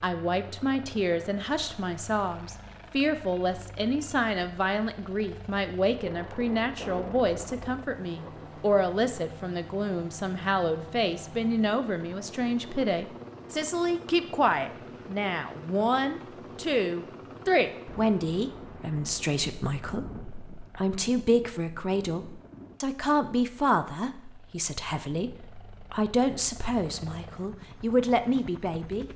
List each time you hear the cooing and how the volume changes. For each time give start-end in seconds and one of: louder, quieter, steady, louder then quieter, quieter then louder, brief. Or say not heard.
not heard.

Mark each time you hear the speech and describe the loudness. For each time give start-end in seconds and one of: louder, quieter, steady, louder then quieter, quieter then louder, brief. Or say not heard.
0.0-29.1 steady.